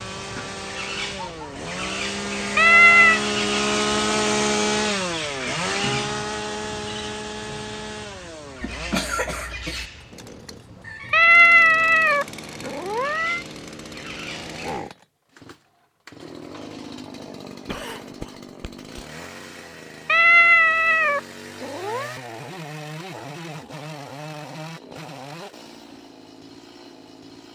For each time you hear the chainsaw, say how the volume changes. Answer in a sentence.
You can hear the chainsaw from 0.0 to 27.5 s, getting quieter.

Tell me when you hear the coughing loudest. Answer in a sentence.
The loudest moment of the coughing is at 9 seconds.